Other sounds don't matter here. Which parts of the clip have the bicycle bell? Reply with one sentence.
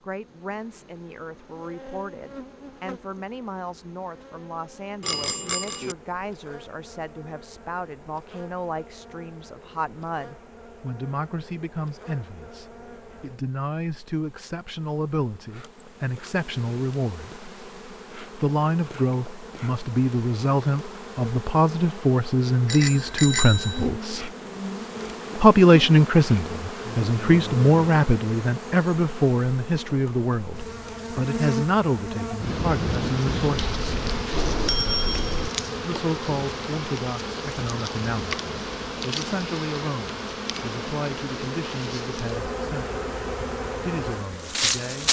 You can hear the bicycle bell from 5.0 to 6.0 s, from 22.6 to 23.9 s and from 33.7 to 35.5 s.